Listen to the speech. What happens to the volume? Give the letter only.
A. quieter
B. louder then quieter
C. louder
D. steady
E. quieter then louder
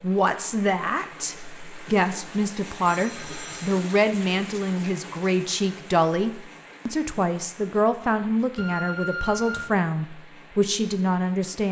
D.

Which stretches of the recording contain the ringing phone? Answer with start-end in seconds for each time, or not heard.
2.9-3.7, 8.6-9.7.